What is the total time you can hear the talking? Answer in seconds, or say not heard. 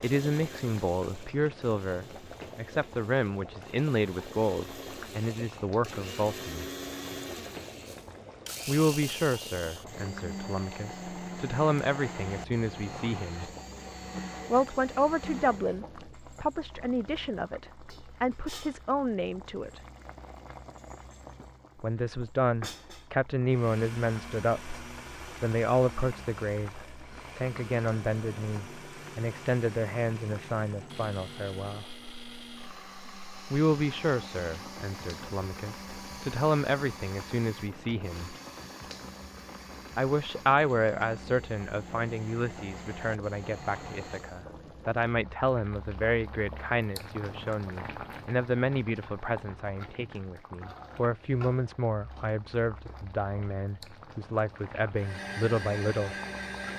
48 s.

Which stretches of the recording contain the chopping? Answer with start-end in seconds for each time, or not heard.
not heard.